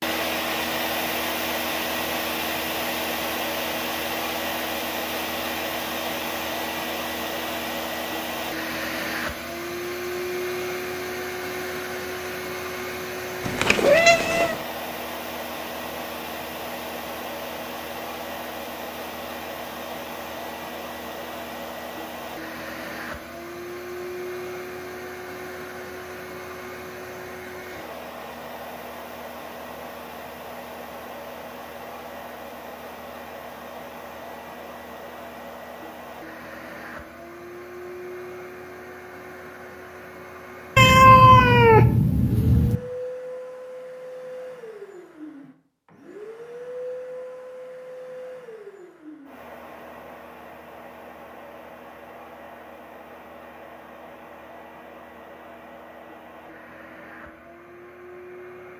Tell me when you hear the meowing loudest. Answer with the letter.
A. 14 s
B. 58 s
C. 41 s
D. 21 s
C.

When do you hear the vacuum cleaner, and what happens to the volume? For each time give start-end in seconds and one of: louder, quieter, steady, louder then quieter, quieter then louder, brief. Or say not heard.
0.0-58.7 quieter.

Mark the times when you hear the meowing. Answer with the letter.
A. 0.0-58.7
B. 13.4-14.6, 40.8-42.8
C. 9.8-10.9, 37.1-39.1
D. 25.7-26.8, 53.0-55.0
B.